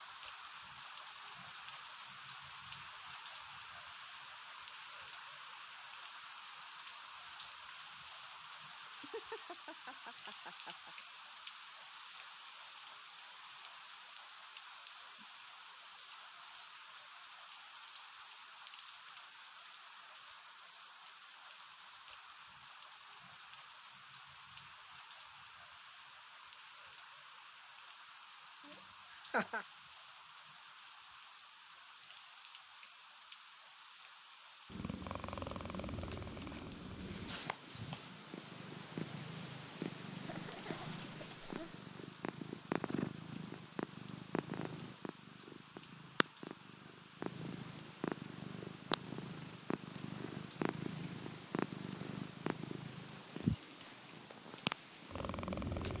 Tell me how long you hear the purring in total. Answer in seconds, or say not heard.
21 s.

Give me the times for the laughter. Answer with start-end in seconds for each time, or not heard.
8.8-10.9, 28.6-29.6, 40.2-41.8.